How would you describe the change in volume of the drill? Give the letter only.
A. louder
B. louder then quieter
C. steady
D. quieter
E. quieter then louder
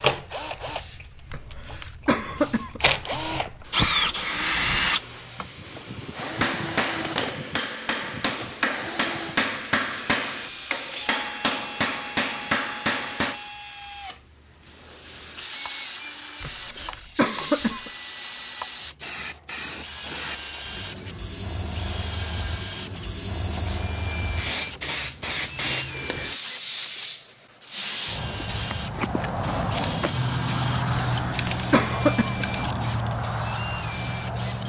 D.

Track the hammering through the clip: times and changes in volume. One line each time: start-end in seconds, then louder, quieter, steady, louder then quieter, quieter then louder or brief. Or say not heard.
6.2-13.4 steady.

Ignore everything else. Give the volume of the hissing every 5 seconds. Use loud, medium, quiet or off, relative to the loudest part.
quiet, quiet, quiet, medium, medium, loud, loud.